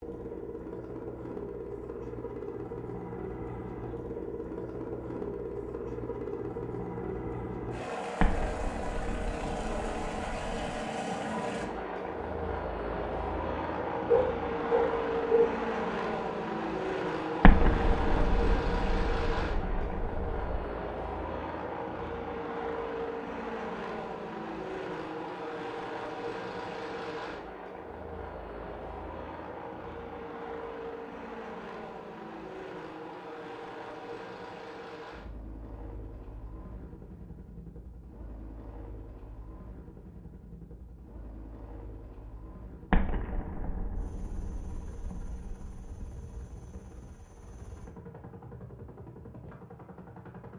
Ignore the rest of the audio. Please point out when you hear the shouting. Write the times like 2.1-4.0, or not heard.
not heard.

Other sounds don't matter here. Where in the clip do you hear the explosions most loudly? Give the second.
18 s.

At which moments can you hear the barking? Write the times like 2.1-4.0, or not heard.
14.1-15.5.